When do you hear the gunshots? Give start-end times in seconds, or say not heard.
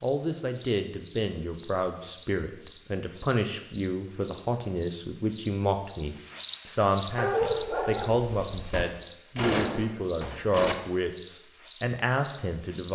8.7-10.8.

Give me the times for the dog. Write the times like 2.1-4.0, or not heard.
7.2-8.8.